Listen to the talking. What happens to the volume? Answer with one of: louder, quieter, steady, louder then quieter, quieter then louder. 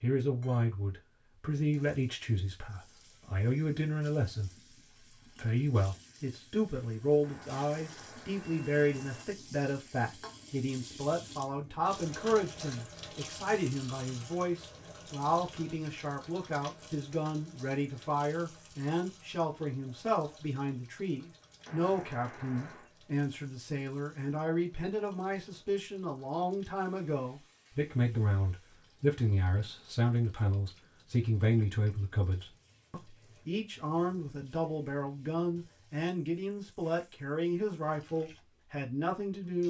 steady.